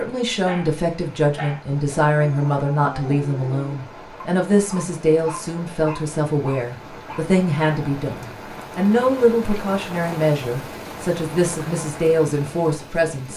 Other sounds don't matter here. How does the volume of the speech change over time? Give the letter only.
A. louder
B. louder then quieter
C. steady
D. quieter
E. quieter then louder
C.